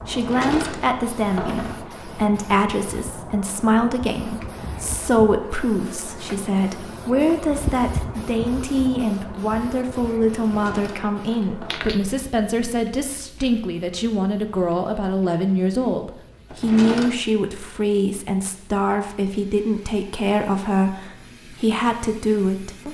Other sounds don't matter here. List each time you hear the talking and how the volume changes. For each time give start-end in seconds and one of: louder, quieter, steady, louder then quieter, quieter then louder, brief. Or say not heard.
0.1-22.8 steady.